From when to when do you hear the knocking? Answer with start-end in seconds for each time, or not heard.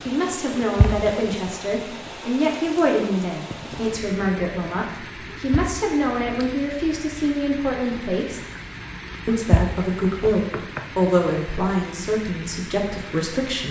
0.6-1.1, 5.3-6.3, 9.3-10.8.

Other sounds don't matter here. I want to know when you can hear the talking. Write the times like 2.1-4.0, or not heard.
0.0-8.4, 9.2-13.6.